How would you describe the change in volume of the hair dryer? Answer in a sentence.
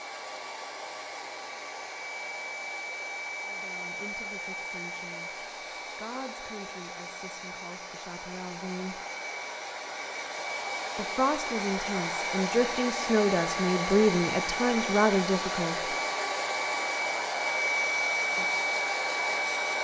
The loudness of the hair dryer goes up.